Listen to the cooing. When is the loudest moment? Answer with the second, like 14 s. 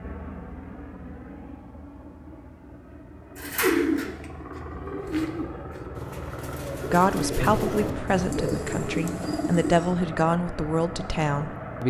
4 s.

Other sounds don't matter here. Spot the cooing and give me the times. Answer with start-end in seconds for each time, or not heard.
3.4-9.8.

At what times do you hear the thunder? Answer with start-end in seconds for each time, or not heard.
7.3-9.4.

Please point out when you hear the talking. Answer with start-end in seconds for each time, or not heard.
6.9-11.8.